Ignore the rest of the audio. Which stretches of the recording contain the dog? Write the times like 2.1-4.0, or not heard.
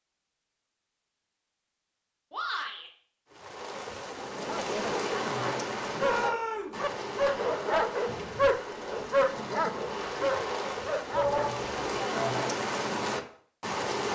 4.4-11.7.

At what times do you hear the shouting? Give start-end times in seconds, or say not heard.
2.3-2.9, 6.0-6.8, 11.1-12.4.